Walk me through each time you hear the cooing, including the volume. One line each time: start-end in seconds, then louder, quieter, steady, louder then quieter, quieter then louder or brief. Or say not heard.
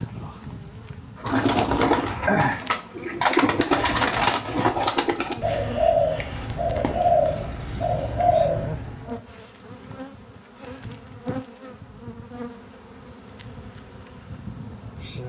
1.1-9.2 steady.